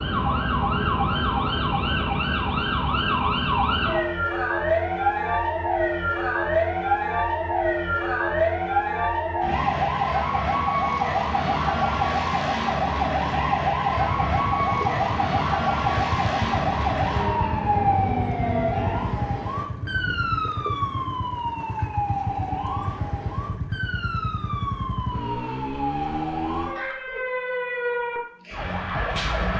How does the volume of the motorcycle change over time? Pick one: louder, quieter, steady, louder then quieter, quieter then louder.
steady.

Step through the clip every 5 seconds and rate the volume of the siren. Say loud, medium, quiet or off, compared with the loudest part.
loud, loud, loud, loud, medium, medium.